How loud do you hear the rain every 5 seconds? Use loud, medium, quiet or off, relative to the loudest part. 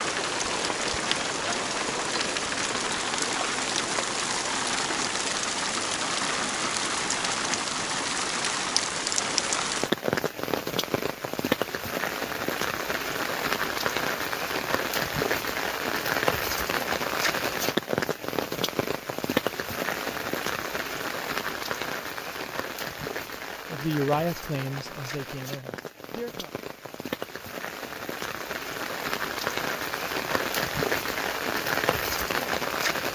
loud, loud, loud, loud, medium, medium, loud.